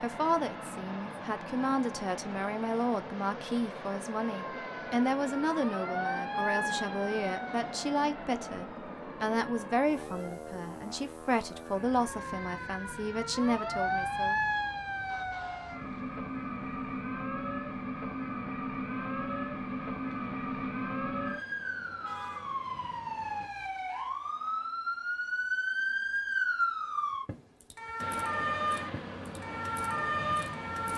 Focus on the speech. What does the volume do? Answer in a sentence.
The volume of the speech stays about the same.